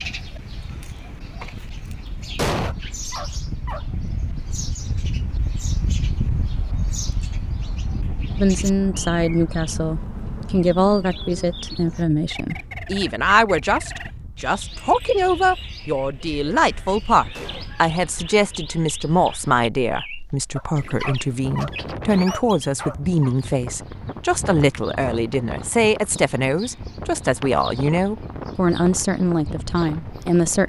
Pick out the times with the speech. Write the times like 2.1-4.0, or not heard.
8.3-30.6.